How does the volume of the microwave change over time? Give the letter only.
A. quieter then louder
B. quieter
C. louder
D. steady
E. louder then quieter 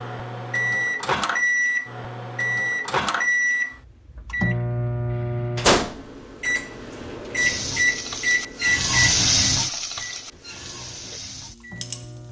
B.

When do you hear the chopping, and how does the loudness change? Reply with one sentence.
You can't hear the chopping here.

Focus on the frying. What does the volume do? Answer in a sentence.
The volume of the frying goes up, then down.